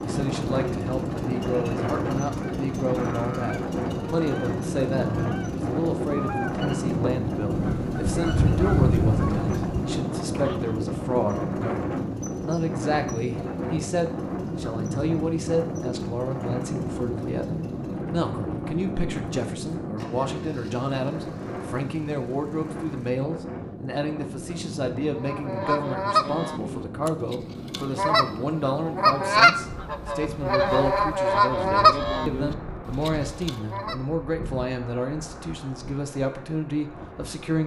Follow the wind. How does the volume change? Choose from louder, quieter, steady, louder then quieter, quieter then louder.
quieter.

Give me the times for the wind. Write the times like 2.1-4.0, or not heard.
0.0-37.6.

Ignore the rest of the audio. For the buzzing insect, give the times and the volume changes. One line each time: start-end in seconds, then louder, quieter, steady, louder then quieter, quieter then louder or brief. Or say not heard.
not heard.